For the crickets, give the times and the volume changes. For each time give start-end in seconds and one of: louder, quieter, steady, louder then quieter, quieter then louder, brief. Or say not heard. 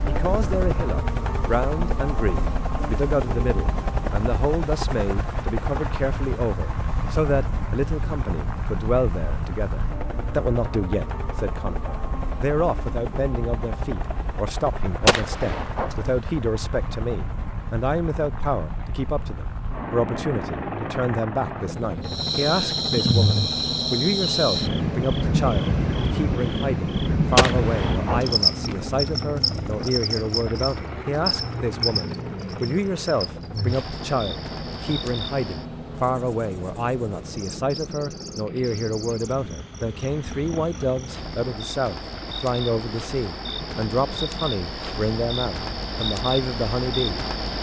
22.1-47.5 quieter then louder.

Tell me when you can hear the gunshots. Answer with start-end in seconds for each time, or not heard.
15.1-16.1, 27.4-28.4.